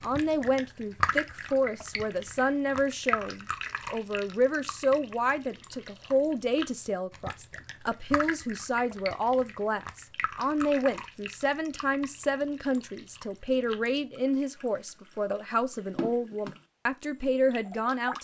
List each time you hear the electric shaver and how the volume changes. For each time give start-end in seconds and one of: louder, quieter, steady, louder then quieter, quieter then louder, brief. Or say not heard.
not heard.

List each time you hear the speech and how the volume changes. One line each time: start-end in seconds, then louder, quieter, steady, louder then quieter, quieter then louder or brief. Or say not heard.
0.0-18.1 steady.